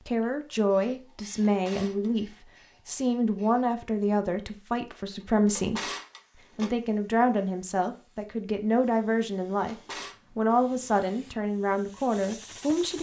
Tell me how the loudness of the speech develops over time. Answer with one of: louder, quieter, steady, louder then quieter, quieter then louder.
steady.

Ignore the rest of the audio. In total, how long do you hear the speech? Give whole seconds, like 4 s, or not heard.
13 s.